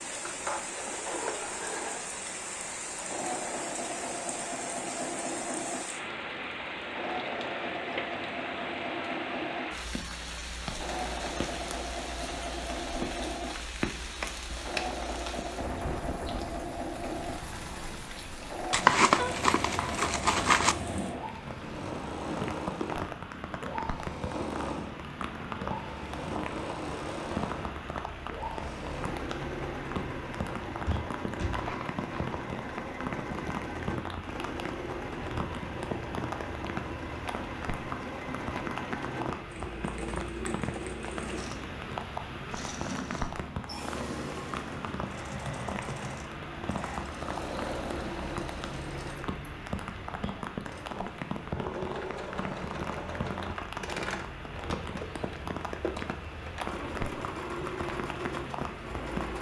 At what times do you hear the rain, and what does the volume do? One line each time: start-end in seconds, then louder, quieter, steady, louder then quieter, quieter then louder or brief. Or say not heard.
0.0-59.3 steady.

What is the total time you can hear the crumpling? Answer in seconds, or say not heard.
3 s.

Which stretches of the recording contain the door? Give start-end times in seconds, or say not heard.
14.2-14.8, 30.9-31.6.